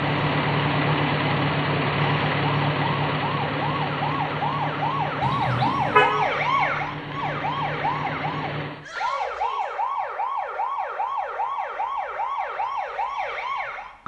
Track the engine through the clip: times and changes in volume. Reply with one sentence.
You can hear the engine from 0.0 to 8.8 s, getting quieter.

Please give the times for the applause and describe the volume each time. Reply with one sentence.
The applause can't be heard in this clip.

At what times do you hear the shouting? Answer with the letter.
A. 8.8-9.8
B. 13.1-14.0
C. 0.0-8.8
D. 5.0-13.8
A.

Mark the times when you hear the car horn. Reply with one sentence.
You can hear the car horn from 5.2 to 6.1 s.